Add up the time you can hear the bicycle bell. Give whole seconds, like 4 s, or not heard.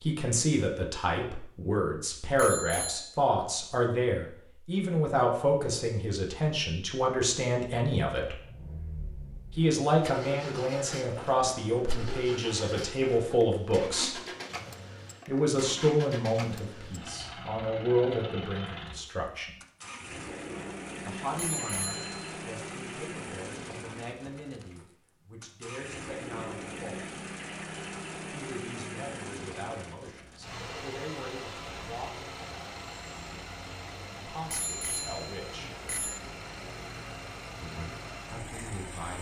3 s.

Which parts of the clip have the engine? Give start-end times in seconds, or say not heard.
8.3-39.1.